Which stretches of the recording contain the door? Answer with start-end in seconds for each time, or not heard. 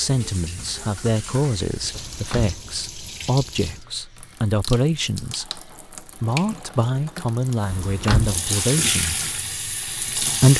1.9-2.6, 7.7-8.4.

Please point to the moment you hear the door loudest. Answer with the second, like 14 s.
8 s.